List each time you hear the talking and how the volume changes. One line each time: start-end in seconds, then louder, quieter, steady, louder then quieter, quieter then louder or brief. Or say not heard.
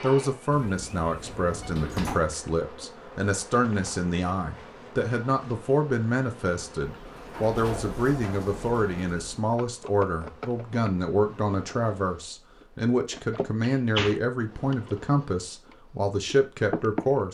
0.0-17.2 steady.